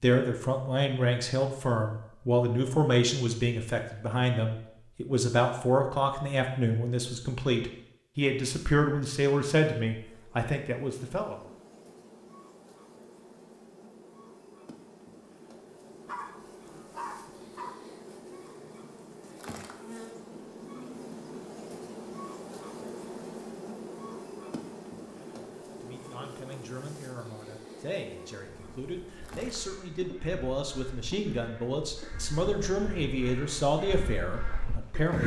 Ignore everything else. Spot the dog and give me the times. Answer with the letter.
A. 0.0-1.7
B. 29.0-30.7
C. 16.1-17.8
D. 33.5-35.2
C.